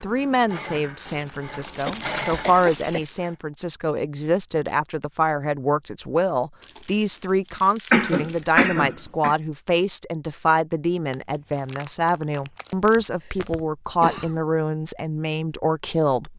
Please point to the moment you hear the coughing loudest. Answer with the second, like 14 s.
8 s.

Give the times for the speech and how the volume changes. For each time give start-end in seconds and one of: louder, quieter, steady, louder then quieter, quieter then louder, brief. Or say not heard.
0.0-16.3 steady.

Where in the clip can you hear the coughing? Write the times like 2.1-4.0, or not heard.
1.9-3.0, 7.9-9.3, 13.2-14.4.